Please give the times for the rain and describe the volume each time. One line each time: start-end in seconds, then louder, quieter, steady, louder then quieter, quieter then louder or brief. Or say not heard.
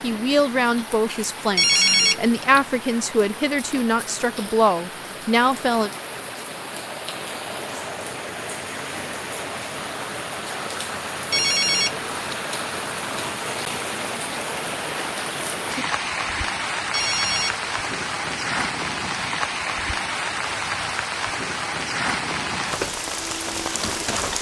0.0-24.3 louder.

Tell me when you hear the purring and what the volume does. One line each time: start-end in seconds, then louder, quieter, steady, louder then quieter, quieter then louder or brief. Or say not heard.
not heard.